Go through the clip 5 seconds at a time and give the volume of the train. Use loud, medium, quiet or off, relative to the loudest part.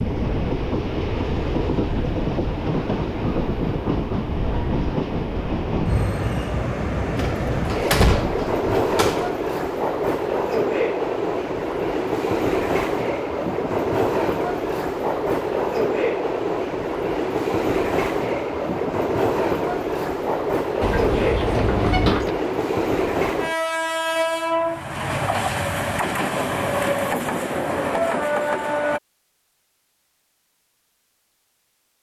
loud, loud, loud, loud, loud, loud, off.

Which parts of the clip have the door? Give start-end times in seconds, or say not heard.
7.2-9.3, 20.8-22.4.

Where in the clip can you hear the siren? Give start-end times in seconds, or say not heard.
not heard.